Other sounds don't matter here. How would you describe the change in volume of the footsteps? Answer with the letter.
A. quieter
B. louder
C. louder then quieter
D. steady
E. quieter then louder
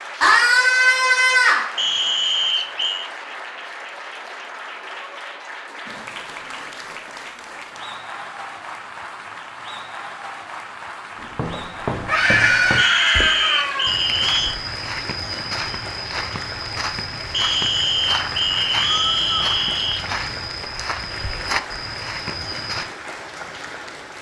D.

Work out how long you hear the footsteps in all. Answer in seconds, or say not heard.
12 s.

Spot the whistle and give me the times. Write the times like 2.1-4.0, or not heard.
1.8-3.1, 12.8-14.6, 17.3-20.1.